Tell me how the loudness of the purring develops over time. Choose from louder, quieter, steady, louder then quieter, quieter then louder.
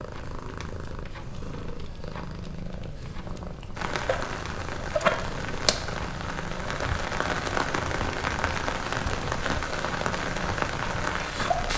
steady.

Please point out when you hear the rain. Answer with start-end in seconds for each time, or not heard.
3.8-11.7.